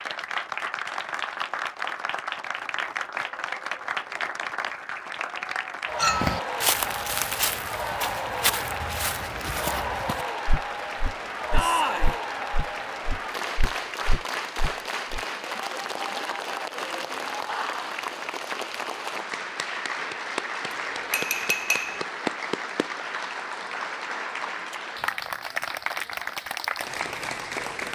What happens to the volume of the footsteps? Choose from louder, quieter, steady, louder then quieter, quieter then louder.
quieter.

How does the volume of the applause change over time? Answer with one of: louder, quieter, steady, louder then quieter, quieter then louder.
steady.